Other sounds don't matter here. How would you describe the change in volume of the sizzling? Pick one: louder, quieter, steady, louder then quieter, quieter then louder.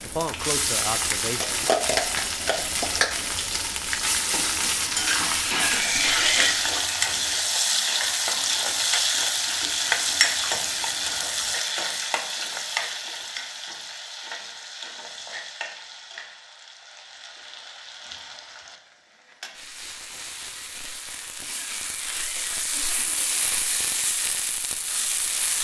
quieter then louder.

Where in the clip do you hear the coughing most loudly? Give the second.
6 s.